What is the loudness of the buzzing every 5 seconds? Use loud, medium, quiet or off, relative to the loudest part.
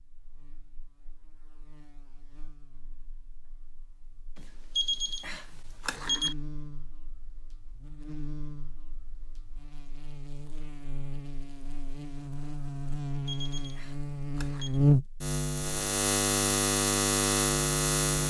quiet, quiet, loud, loud.